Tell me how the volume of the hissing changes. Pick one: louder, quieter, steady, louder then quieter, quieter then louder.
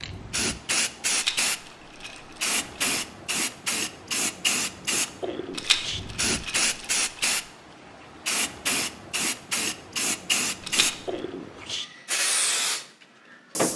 steady.